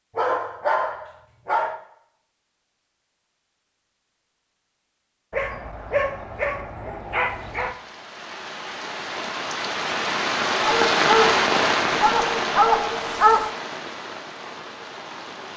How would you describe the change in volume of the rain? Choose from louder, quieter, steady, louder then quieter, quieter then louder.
louder then quieter.